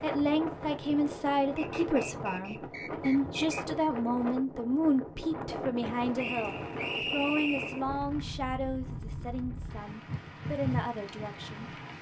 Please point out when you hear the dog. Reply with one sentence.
You can't hear the dog here.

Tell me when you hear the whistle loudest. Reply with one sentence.
The loudest moment of the whistle is at 7 seconds.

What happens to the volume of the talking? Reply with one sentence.
The volume of the talking goes down.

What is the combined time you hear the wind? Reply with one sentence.
The wind can be heard for 12 seconds in total.